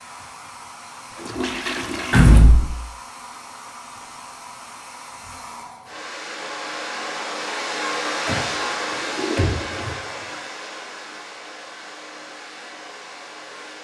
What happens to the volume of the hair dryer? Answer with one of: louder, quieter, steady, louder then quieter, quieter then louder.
louder then quieter.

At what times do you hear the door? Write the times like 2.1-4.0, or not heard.
2.1-2.7, 8.2-9.9.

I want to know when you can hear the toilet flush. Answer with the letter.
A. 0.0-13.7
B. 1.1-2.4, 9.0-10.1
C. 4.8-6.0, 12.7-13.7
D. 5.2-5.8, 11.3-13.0
B.